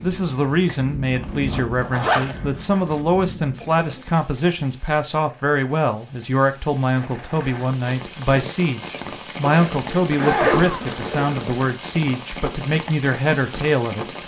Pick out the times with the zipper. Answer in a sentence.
You can hear the zipper from 1.1 to 3.0 s and from 9.4 to 11.7 s.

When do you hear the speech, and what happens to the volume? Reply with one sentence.
The speech can be heard from 0.0 to 14.1 s, at a steady volume.